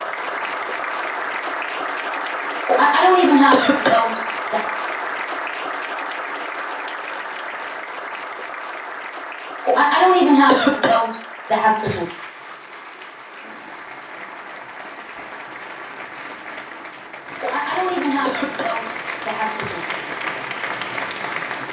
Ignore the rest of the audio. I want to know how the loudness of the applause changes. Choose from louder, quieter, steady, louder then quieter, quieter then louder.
quieter then louder.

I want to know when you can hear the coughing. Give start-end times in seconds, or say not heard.
2.6-4.7, 9.7-12.1, 17.4-19.9.